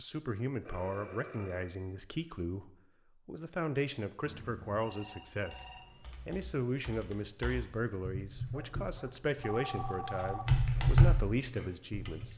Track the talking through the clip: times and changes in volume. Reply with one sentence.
You can hear the talking from 0.0 to 12.3 s, at a steady volume.